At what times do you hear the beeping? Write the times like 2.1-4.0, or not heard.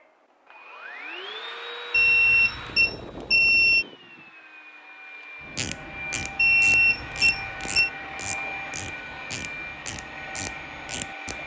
1.9-3.9, 6.3-7.9.